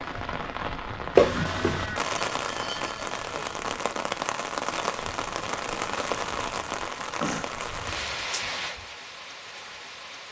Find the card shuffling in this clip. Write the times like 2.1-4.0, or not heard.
1.1-1.9.